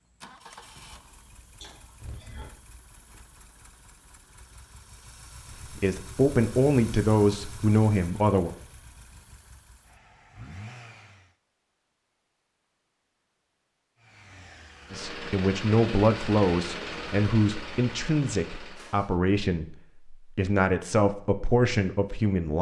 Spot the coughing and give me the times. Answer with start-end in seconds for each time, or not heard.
1.6-2.5.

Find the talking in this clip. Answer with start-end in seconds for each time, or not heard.
5.7-8.6, 14.9-22.5.